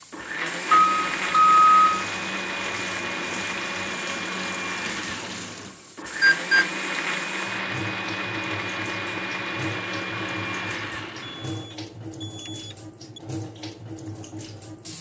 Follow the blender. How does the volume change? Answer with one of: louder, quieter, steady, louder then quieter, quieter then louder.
steady.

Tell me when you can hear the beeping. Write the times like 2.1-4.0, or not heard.
0.8-1.9, 6.2-6.7, 11.2-13.2.